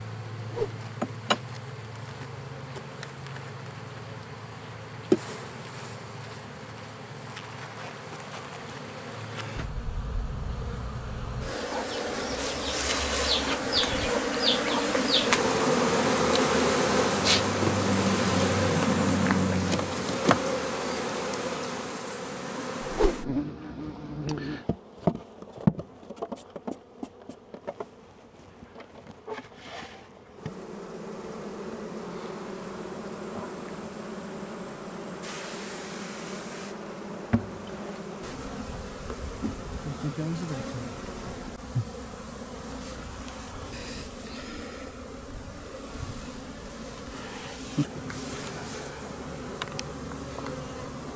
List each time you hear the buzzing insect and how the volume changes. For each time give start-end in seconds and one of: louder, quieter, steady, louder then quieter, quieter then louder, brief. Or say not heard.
0.0-51.1 louder then quieter.